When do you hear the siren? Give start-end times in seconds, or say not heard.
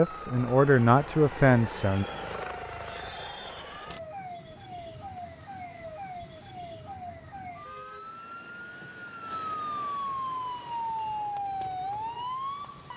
0.0-12.9.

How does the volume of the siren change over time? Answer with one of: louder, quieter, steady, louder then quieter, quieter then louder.
louder.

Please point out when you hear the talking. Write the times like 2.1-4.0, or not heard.
0.0-2.0.